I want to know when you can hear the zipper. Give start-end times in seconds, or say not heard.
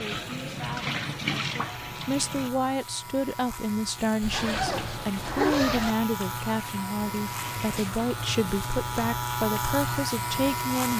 4.2-6.0.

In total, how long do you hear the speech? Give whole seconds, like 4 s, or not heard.
11 s.